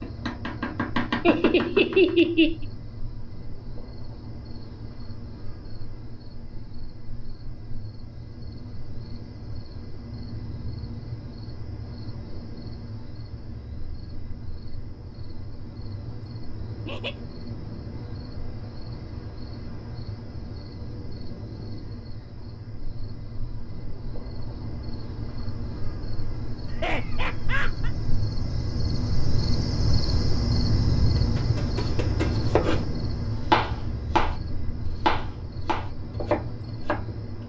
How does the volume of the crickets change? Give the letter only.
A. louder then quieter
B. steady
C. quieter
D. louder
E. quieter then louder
D.